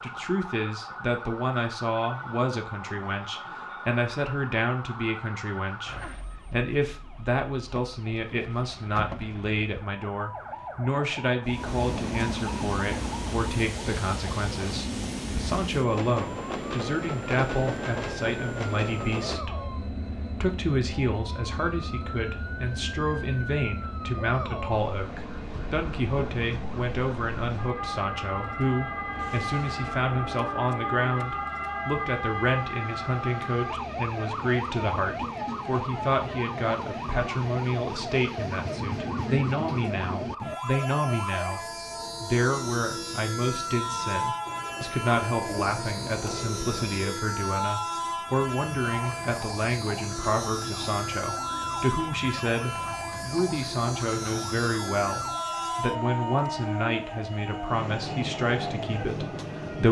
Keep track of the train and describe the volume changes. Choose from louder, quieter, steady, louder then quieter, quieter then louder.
quieter then louder.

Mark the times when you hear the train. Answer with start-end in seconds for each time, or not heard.
11.4-59.8.